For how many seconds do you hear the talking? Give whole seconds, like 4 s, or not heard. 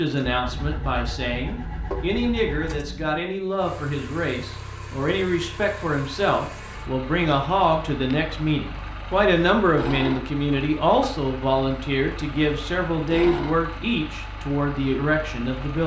16 s.